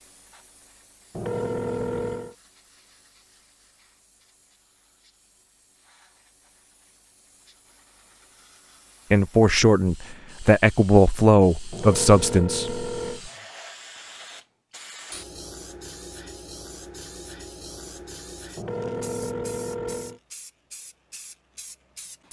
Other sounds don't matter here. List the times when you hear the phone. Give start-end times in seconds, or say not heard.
1.1-2.4, 11.7-13.2, 18.6-20.2.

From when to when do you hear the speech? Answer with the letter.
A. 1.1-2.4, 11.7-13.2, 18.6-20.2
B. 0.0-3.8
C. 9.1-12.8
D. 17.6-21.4
C.